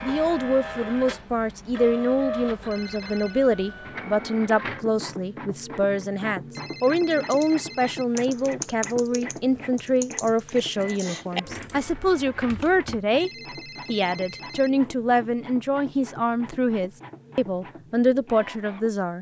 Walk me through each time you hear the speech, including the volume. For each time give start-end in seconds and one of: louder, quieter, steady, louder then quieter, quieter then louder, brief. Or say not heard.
0.0-19.1 steady.